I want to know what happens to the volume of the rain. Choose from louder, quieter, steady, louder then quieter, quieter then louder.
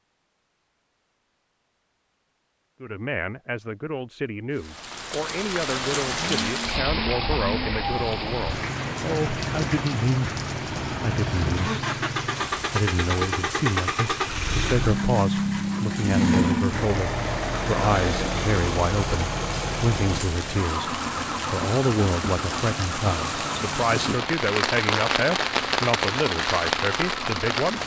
quieter then louder.